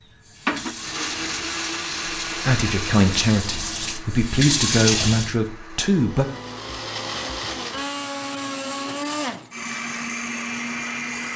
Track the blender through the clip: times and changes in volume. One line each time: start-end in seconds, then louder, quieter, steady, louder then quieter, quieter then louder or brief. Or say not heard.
0.0-11.3 quieter then louder.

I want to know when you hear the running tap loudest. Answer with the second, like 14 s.
5 s.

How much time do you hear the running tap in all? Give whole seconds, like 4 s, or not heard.
5 s.